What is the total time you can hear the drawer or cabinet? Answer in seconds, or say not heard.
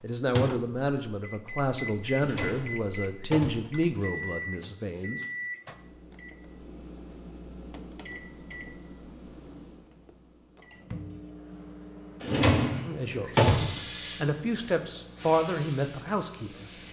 3 s.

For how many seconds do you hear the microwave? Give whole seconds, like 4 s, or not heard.
17 s.